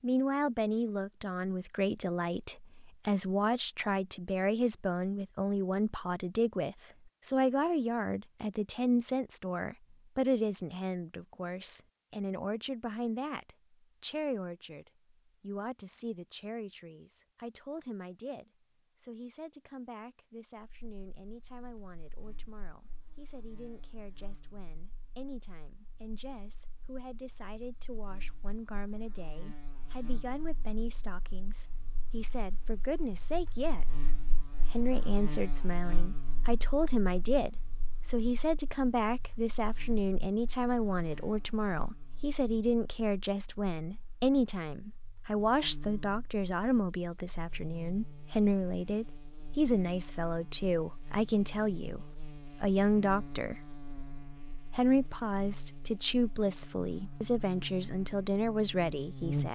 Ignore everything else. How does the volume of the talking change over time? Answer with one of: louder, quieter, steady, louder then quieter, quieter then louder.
quieter then louder.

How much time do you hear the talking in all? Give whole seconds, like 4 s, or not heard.
58 s.